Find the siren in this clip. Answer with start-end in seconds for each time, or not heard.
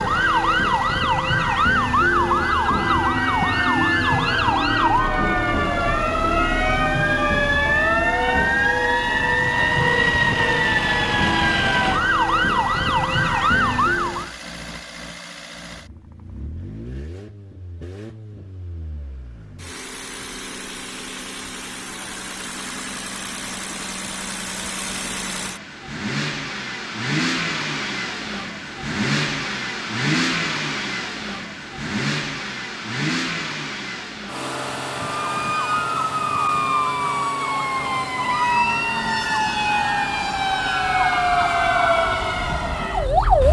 0.0-14.3, 35.1-43.4.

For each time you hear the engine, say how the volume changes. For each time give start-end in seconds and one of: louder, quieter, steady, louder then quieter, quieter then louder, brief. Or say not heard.
0.0-43.4 louder then quieter.